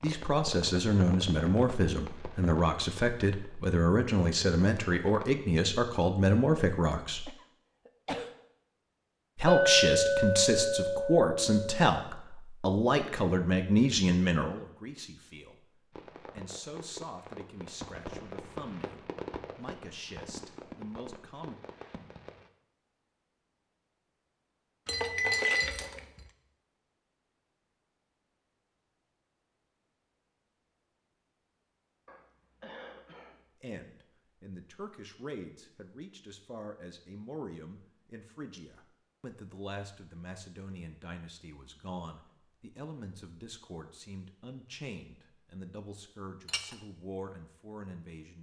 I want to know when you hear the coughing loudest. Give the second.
8 s.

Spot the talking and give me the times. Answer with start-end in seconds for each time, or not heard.
0.0-7.3, 9.3-21.6, 33.6-48.3.